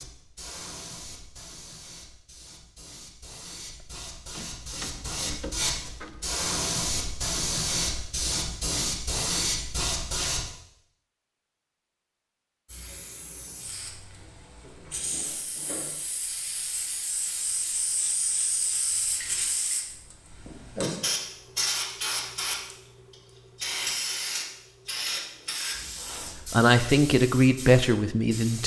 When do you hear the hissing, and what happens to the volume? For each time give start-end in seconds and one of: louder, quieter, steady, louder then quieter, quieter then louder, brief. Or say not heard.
0.0-10.4 louder
12.7-28.6 louder then quieter.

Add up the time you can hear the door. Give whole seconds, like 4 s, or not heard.
4 s.